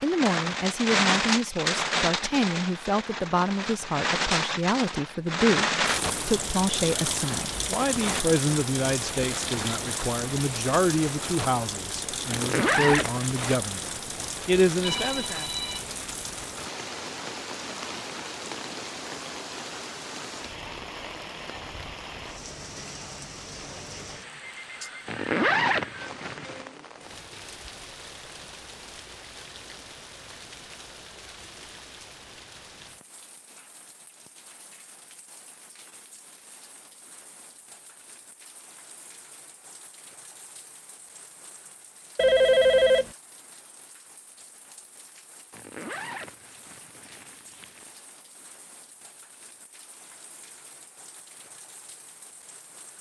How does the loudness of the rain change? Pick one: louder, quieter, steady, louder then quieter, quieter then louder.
quieter.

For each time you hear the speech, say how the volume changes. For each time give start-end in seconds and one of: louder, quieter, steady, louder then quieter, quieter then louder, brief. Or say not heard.
0.0-15.5 steady.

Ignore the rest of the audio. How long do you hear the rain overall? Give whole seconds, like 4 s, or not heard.
53 s.